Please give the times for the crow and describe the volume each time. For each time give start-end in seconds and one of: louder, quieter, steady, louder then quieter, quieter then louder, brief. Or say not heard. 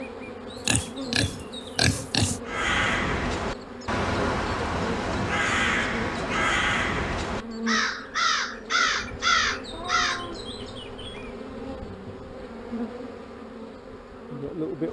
2.5-10.2 steady.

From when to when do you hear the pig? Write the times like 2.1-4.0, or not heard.
0.6-2.4.